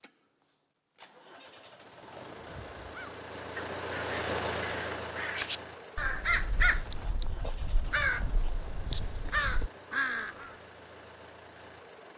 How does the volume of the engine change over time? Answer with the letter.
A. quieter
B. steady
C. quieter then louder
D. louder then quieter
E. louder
D.